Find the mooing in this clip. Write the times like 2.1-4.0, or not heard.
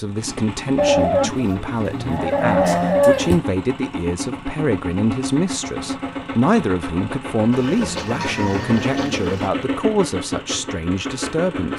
0.8-3.4, 7.7-9.1.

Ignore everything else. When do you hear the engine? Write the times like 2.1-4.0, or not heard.
0.1-11.7.